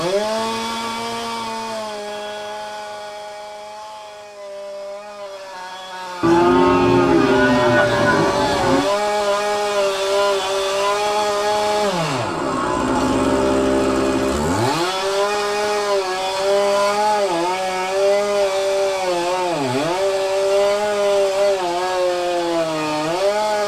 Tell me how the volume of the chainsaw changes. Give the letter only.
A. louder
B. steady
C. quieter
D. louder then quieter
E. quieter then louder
A.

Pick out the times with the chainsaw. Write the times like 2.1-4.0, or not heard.
0.0-23.6.